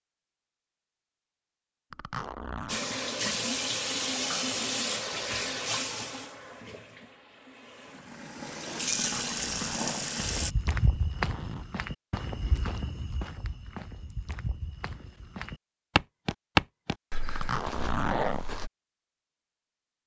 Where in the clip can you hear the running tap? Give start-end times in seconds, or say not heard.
2.6-10.6.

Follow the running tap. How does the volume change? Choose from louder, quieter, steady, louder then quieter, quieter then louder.
quieter then louder.